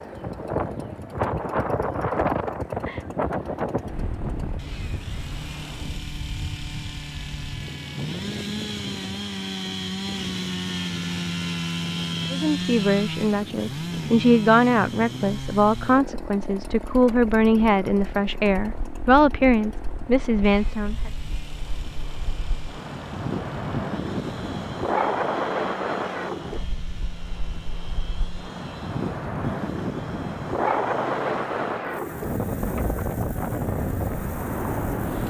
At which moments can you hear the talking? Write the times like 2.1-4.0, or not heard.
12.3-21.1.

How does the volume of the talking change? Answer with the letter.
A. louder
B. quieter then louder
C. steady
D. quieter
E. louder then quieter
C.